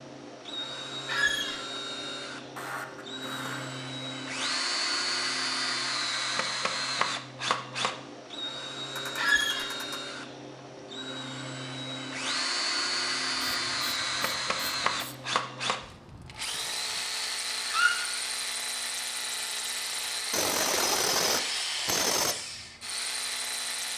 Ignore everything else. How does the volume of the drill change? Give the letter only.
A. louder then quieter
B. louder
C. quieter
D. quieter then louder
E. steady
E.